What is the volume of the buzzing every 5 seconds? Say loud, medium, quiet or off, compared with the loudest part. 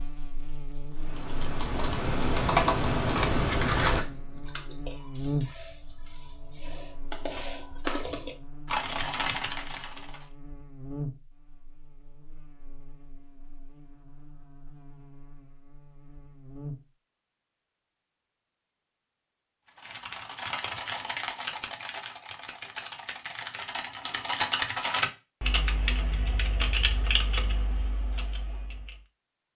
medium, loud, medium, medium, off, off.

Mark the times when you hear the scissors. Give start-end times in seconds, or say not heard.
3.1-4.5.